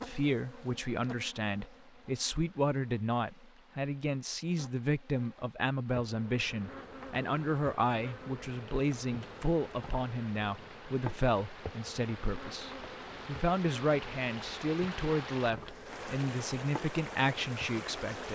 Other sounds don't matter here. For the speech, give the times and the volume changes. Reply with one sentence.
You can hear the speech from 0.0 to 18.3 s, at a steady volume.